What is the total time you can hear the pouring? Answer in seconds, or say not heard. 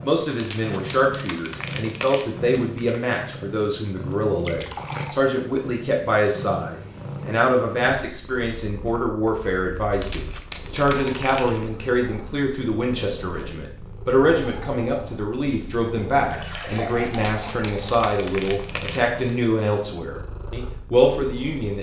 3 s.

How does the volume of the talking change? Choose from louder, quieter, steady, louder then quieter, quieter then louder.
steady.